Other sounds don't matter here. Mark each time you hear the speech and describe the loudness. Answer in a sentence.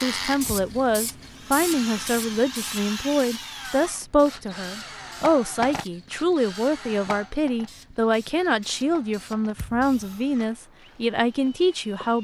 You can hear the speech from 0.0 to 12.1 s, at a steady volume.